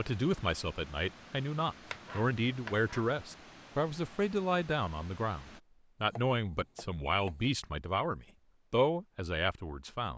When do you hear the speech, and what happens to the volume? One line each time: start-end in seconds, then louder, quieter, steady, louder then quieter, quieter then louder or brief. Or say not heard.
0.0-10.1 steady.